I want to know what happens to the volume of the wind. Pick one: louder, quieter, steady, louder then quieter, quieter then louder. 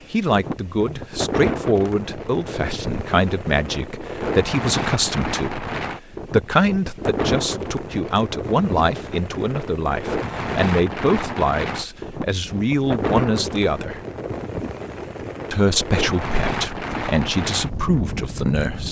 steady.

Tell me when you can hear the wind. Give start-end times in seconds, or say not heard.
0.0-18.8.